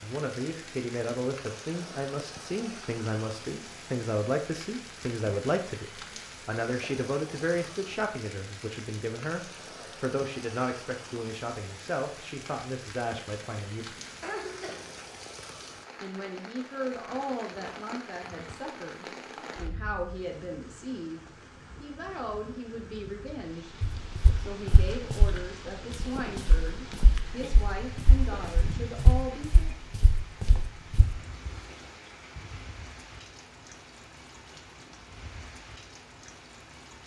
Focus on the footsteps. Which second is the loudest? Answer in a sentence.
The loudest moment of the footsteps is at 29 seconds.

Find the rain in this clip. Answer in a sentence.
The rain can be heard from 0.0 to 37.0 s.